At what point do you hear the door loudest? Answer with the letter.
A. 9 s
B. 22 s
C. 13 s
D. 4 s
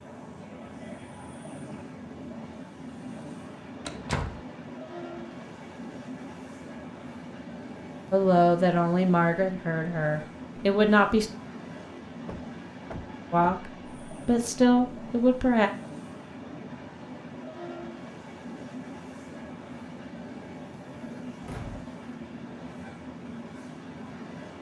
D.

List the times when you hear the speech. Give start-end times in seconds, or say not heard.
8.1-11.3, 13.3-15.7.